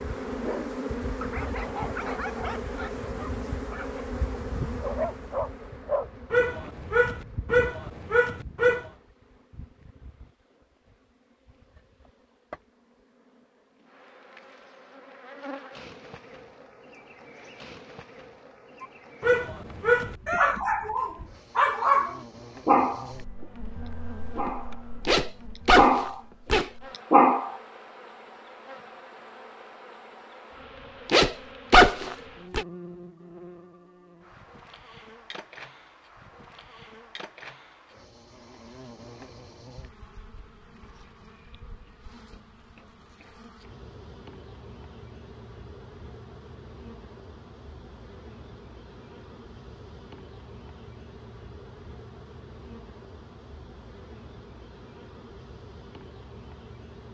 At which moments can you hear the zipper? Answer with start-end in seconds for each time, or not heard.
25.1-26.7, 31.1-32.6.